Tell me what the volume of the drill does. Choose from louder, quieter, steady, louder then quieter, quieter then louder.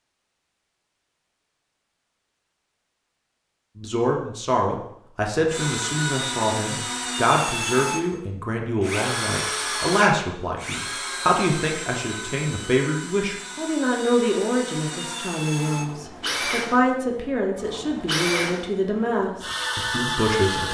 quieter then louder.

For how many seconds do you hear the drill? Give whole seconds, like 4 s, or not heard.
15 s.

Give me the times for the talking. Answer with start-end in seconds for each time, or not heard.
3.8-20.6.